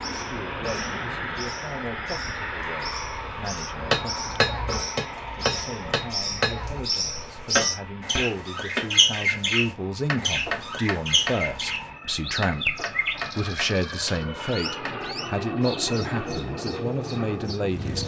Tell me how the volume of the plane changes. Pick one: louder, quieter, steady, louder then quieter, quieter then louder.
quieter then louder.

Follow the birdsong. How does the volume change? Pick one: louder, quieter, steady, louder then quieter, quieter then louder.
louder then quieter.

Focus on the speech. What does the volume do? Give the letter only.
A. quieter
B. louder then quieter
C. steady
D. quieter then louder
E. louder
E.